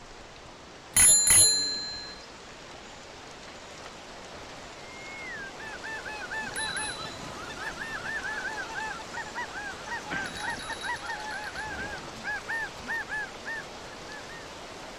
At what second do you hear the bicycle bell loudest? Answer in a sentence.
The volume of the bicycle bell peaks at 1 second.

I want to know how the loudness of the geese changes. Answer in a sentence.
The loudness of the geese stays about the same.